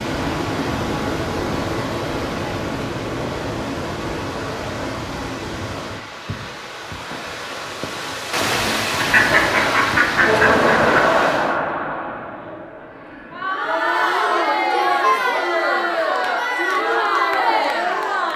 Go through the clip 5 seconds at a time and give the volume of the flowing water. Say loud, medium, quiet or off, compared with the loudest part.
loud, loud, loud, off.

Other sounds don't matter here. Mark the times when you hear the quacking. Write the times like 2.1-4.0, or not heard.
8.9-11.0.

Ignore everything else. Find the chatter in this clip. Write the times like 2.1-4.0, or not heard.
9.1-18.3.